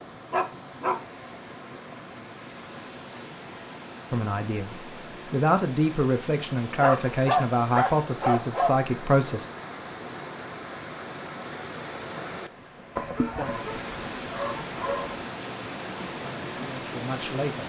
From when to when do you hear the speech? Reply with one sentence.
You can hear the speech from 4.1 to 9.4 s and from 16.1 to 17.6 s.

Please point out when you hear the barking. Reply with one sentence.
You can hear the barking from 0.3 to 1.1 s, from 6.8 to 8.8 s and from 12.9 to 15.2 s.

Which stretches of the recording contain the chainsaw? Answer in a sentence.
You can't hear the chainsaw here.